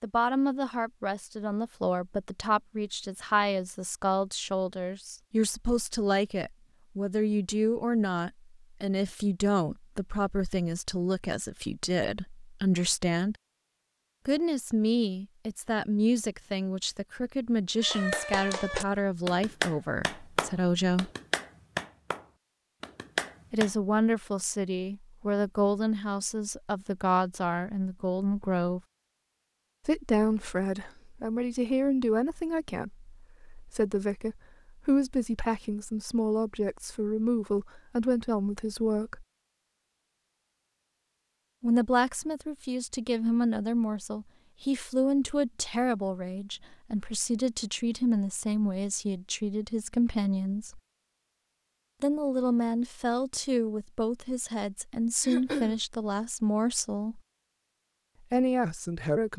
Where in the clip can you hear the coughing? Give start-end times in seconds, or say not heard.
55.2-55.8.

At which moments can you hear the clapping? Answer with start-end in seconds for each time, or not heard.
17.8-23.7.